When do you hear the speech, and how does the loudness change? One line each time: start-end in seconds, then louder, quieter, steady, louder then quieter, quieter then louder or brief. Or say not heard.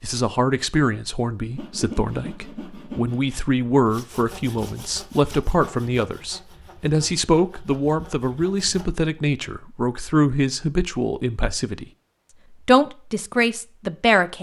0.0-11.8 steady
12.7-14.3 brief.